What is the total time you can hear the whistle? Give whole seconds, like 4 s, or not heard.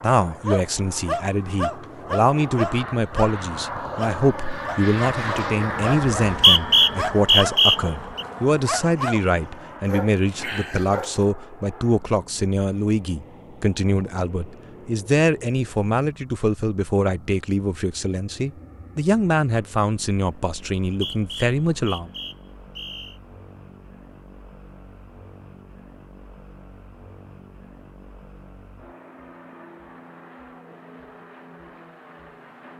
4 s.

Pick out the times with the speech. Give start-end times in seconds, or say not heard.
0.0-22.1.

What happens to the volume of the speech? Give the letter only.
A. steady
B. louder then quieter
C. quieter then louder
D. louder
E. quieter
A.